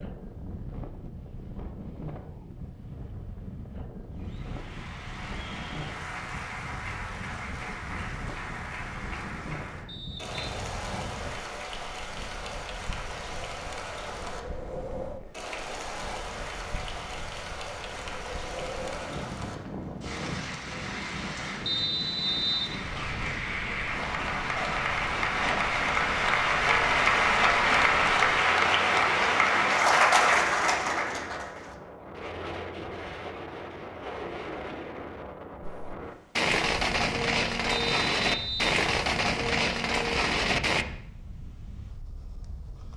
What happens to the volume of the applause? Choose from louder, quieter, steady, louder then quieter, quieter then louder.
louder.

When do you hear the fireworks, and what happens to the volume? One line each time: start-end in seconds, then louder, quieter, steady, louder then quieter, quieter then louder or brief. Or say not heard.
35.6-40.9 steady.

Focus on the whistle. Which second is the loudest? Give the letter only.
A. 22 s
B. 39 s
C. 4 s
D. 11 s
A.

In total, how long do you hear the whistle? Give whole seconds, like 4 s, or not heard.
3 s.